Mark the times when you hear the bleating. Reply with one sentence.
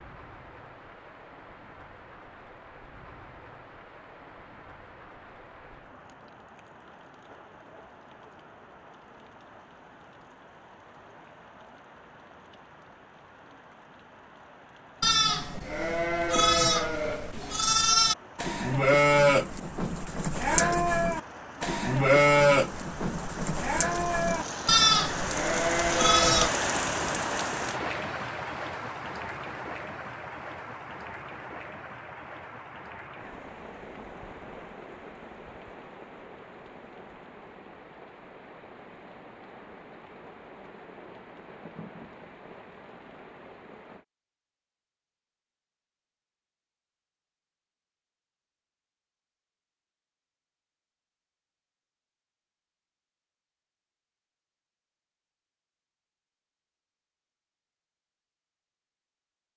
You can hear the bleating from 15.0 to 26.5 s.